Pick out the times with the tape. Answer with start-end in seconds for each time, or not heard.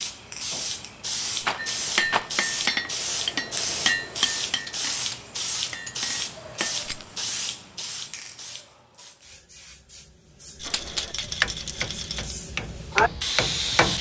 not heard.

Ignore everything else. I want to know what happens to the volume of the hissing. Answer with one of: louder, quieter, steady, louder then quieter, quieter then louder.
quieter then louder.